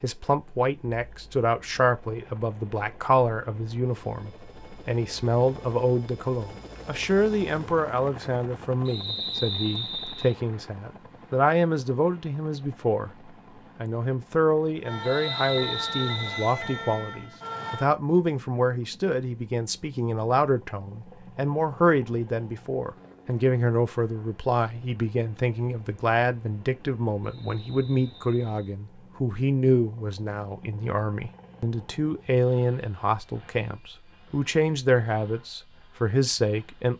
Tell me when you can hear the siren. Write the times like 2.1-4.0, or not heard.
14.8-17.9.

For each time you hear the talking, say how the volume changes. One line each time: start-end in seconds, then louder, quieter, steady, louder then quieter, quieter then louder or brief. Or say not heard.
0.0-36.9 steady.